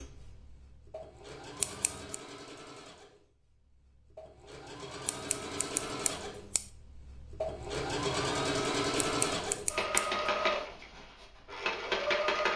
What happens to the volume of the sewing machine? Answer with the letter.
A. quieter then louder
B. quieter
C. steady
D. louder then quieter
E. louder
E.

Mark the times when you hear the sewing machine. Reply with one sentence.
The sewing machine can be heard from 0.0 to 12.5 s.